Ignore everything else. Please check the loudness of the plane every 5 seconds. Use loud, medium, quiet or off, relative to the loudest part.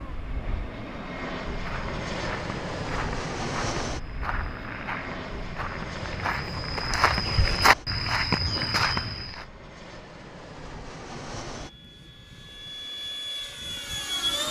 loud, medium, loud.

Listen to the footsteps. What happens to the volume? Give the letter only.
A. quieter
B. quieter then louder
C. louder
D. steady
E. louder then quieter
C.